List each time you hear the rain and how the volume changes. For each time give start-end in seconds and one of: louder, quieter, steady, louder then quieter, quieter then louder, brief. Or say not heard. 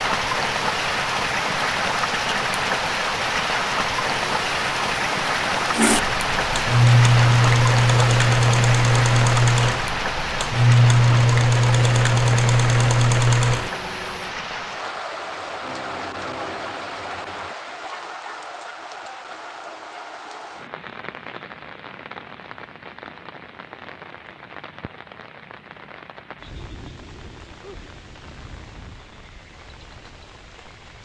0.0-31.0 quieter.